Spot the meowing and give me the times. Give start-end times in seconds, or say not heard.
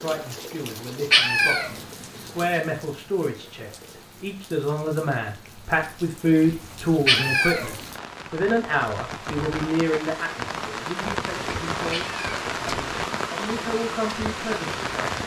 1.1-1.7, 7.0-7.7, 11.9-12.3.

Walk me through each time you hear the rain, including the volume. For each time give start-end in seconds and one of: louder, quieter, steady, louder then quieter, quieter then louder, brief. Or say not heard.
0.0-15.2 quieter then louder.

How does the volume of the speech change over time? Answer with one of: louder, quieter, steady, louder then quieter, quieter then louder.
louder then quieter.